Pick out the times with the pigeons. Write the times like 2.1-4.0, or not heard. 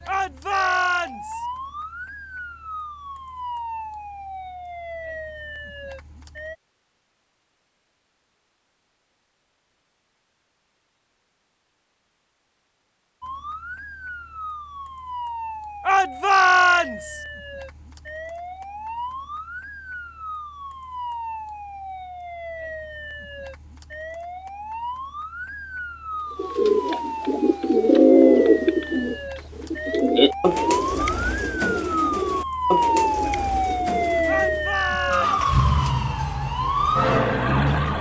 26.4-34.7.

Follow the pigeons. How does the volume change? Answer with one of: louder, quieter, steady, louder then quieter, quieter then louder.
quieter.